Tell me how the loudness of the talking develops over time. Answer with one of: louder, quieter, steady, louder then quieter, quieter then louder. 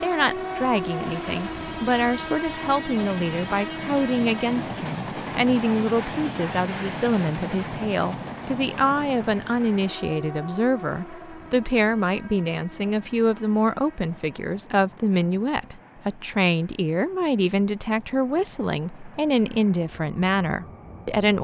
steady.